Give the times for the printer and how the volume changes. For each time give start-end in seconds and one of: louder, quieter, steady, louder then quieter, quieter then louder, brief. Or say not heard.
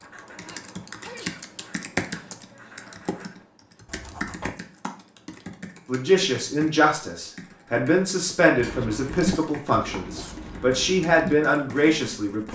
not heard.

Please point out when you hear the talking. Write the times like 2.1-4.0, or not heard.
5.8-12.5.